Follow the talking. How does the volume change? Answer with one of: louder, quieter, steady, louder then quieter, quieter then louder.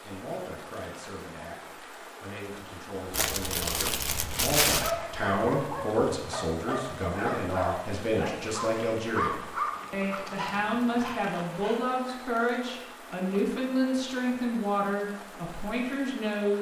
louder.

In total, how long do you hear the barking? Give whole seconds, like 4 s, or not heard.
8 s.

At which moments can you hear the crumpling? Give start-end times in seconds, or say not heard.
3.1-5.0, 9.7-11.7.